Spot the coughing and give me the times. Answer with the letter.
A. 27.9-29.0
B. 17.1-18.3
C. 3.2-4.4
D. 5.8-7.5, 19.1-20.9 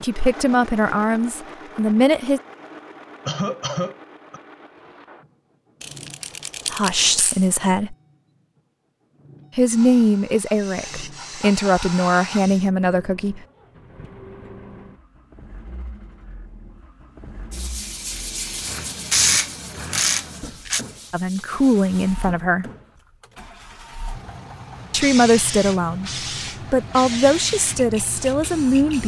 C.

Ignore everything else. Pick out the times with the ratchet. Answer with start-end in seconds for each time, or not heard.
5.8-7.5, 19.1-20.9.